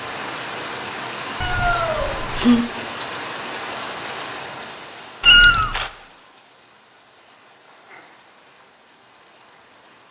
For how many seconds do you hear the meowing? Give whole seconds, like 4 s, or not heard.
2 s.